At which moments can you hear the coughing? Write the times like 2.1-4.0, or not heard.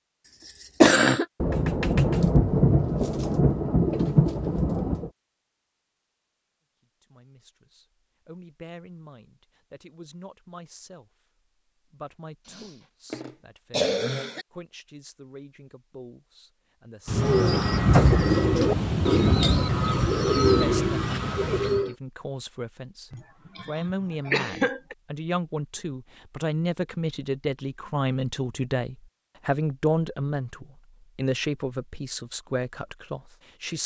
0.5-1.2, 12.5-14.4, 23.1-24.9.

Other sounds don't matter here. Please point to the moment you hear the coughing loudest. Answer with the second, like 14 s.
1 s.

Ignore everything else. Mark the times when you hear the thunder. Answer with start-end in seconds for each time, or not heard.
1.4-5.1, 17.1-21.8.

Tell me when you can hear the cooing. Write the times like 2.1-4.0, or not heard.
17.1-21.9.